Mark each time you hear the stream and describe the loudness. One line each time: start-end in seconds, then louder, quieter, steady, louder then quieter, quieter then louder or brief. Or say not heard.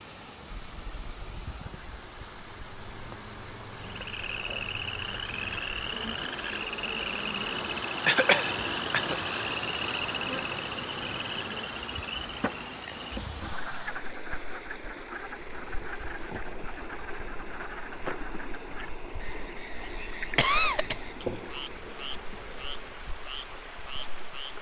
0.0-24.5 louder then quieter.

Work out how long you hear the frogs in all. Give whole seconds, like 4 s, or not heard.
21 s.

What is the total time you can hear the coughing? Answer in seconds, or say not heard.
2 s.